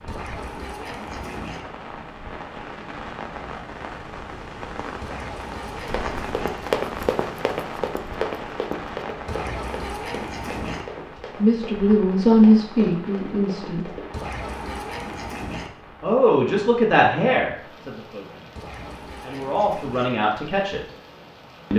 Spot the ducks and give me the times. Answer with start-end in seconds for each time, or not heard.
0.1-1.6, 5.0-6.5, 9.2-10.8, 14.1-15.7, 18.6-20.1.